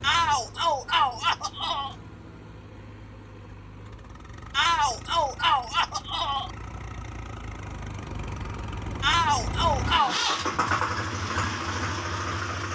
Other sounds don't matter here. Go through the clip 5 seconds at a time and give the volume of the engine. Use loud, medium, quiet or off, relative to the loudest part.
quiet, medium, loud.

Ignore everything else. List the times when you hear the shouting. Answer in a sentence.
The shouting can be heard from 0.0 to 1.9 s, from 4.5 to 6.5 s and from 9.0 to 10.2 s.